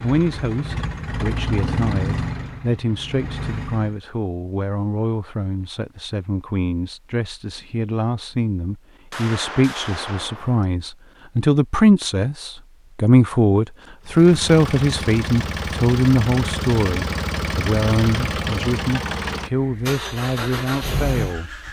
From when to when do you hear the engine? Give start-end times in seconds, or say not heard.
0.0-4.0, 14.1-21.6.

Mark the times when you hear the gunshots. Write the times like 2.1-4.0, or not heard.
9.1-10.7.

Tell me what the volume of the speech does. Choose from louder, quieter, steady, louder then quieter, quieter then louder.
louder then quieter.